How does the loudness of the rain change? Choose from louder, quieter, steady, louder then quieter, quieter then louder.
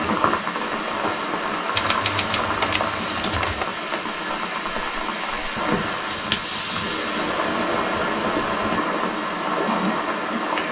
steady.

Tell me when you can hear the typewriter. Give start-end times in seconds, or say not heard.
1.8-3.6, 5.8-7.0.